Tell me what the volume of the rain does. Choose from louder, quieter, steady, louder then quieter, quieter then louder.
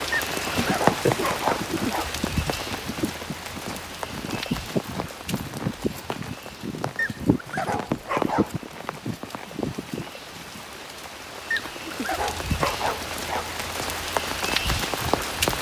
quieter then louder.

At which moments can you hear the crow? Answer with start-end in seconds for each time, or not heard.
not heard.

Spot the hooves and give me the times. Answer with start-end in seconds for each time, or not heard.
0.5-10.7.